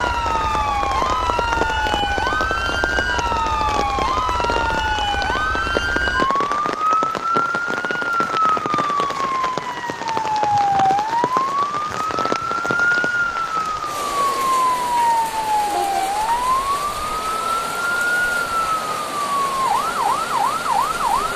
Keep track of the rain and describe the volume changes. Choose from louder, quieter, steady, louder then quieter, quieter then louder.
steady.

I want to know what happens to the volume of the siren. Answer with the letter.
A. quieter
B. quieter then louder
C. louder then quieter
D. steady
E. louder
D.